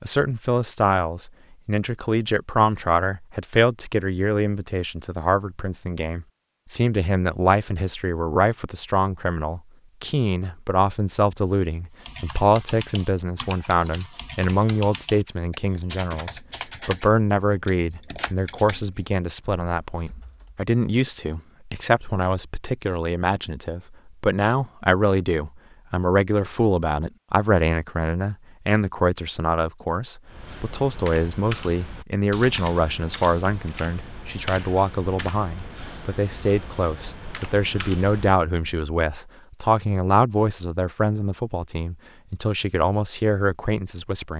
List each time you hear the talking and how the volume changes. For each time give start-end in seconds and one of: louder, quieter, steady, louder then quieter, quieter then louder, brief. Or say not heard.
0.0-44.3 steady.